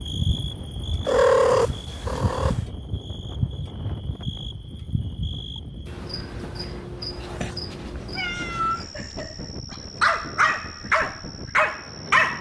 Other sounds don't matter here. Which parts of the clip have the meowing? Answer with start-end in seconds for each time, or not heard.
1.1-2.5, 7.1-8.8.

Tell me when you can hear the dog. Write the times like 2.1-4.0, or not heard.
8.8-12.3.